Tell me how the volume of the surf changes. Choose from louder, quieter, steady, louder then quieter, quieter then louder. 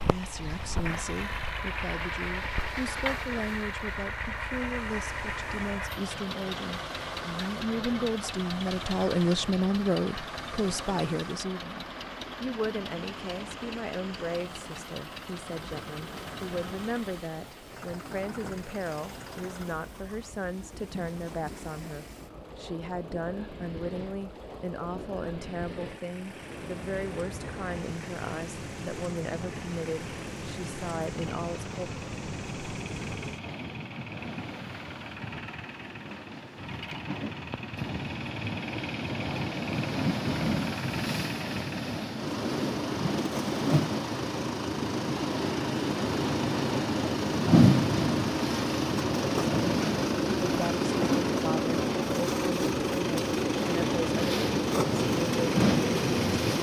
louder.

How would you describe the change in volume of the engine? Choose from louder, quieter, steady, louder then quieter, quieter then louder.
quieter then louder.